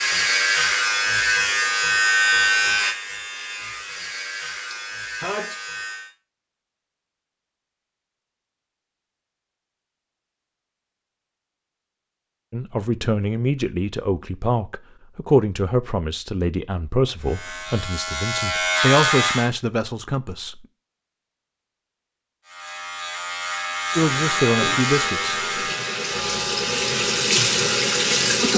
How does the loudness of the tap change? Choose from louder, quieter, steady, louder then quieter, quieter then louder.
louder.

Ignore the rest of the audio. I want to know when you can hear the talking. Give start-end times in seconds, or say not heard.
12.5-20.6, 23.9-25.8.